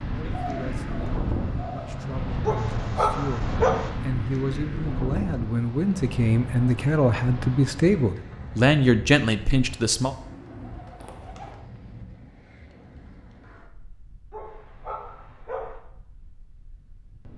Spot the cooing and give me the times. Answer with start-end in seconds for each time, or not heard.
0.2-2.0, 9.6-11.6.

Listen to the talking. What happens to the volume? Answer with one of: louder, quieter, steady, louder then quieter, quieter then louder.
louder.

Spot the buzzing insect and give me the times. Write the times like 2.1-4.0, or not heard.
not heard.